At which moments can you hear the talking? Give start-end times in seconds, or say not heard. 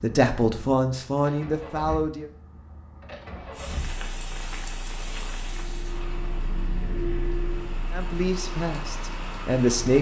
0.0-2.3, 7.9-9.9.